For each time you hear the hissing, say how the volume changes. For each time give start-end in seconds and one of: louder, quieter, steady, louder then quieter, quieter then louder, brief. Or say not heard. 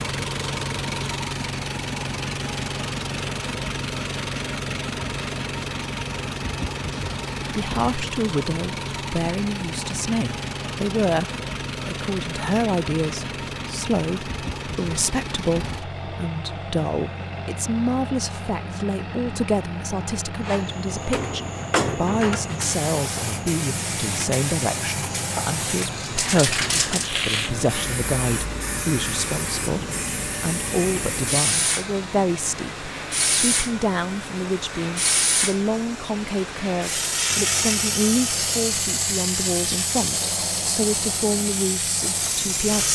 20.4-42.9 steady.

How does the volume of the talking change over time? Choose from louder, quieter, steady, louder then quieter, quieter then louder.
steady.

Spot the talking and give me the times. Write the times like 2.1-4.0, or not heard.
7.5-42.9.